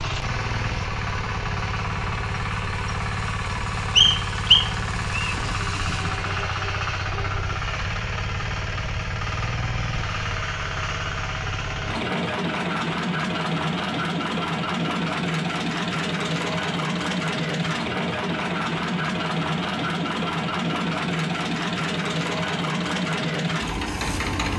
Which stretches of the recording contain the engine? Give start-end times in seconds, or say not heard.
0.0-24.5.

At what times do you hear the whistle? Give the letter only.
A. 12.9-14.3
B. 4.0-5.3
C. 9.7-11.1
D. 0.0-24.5
B.